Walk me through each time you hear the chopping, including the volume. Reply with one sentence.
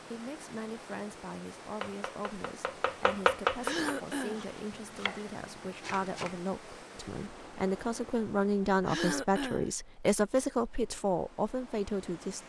The chopping can be heard from 1.8 to 6.4 s, getting louder then quieter.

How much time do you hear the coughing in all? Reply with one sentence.
The coughing can be heard for 2 seconds in total.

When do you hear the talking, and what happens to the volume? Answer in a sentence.
The talking can be heard from 0.1 to 12.4 s, getting louder.